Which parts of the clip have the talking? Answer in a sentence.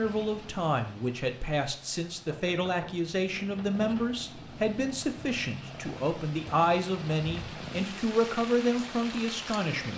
The talking can be heard from 0.0 to 9.9 s.